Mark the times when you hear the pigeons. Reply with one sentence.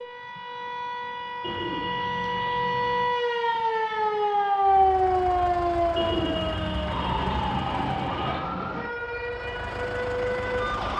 The pigeons can be heard from 1.4 to 3.1 s and from 6.0 to 8.3 s.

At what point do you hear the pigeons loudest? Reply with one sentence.
The loudest moment of the pigeons is at 6 seconds.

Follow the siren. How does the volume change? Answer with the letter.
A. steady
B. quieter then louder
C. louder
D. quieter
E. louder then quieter
E.